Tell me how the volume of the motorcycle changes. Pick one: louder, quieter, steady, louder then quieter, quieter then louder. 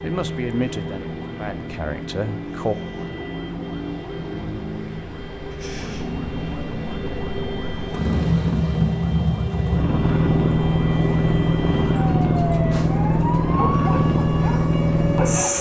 louder.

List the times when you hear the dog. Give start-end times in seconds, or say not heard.
13.5-15.5.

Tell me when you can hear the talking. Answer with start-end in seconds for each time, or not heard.
0.0-2.8.